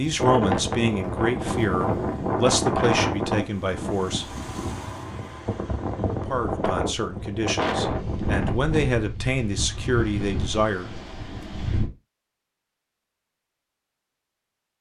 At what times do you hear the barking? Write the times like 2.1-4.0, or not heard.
not heard.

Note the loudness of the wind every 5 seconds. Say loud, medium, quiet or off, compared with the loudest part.
loud, loud, medium.